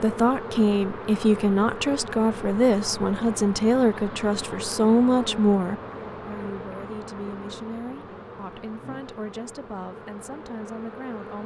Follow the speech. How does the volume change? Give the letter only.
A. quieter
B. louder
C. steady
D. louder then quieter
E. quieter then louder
A.